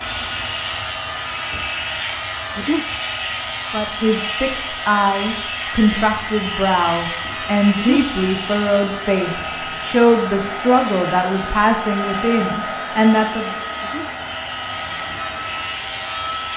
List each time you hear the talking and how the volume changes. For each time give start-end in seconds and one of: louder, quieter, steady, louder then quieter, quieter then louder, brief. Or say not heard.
3.7-13.6 steady.